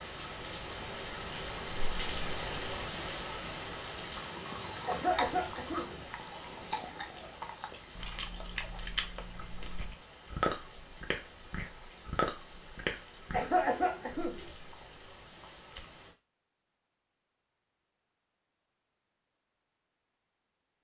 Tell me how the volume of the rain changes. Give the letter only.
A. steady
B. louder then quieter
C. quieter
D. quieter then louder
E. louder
C.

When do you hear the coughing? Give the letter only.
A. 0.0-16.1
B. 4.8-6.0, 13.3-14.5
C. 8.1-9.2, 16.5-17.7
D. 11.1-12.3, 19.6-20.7
B.